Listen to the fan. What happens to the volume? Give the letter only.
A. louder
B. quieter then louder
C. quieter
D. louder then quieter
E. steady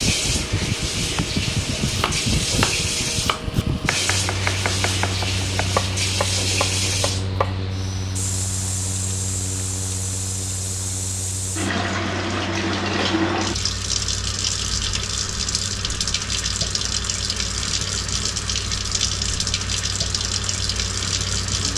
C.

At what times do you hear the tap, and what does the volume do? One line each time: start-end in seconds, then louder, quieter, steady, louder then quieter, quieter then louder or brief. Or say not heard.
0.0-21.7 steady.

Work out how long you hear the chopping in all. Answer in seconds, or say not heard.
6 s.